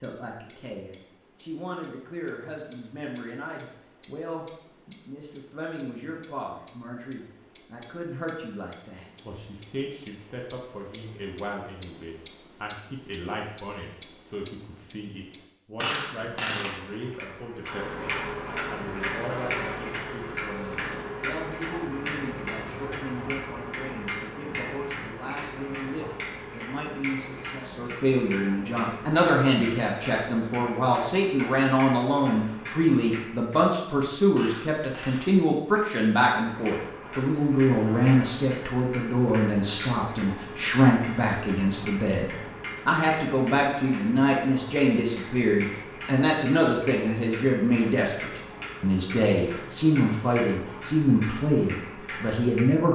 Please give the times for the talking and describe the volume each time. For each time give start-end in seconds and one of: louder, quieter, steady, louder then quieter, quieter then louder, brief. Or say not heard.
0.0-52.8 louder.